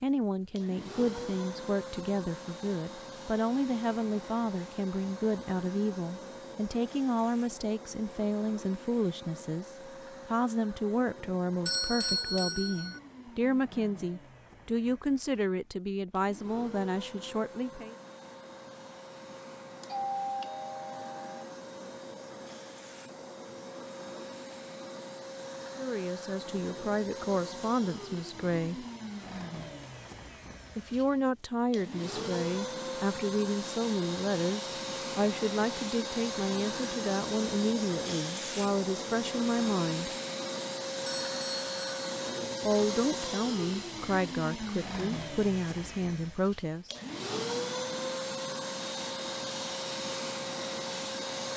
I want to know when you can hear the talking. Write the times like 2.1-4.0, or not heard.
0.0-17.9, 25.8-28.9, 30.8-40.1, 42.6-46.9.